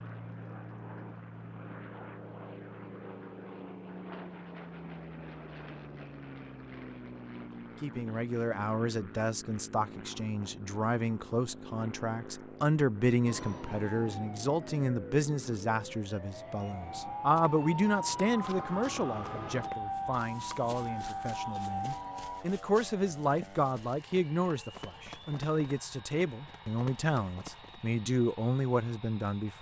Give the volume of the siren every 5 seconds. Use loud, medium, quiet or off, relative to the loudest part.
off, off, medium, loud, loud, off.